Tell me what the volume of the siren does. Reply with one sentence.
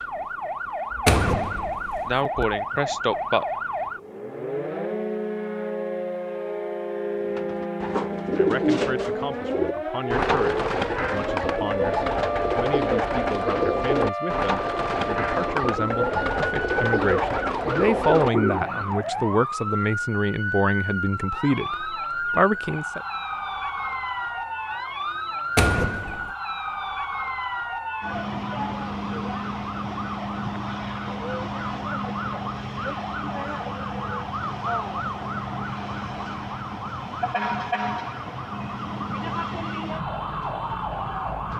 The volume of the siren stays about the same.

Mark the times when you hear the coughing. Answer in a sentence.
The coughing can be heard from 2.0 to 3.5 s.